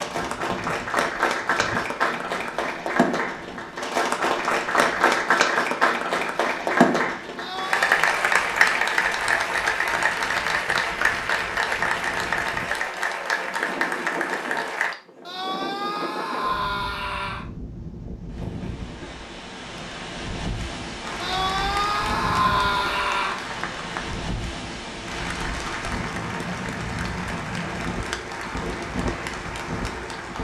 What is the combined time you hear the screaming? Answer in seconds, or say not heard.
5 s.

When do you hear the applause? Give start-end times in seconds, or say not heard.
0.0-14.9, 21.0-30.3.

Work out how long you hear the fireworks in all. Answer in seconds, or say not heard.
not heard.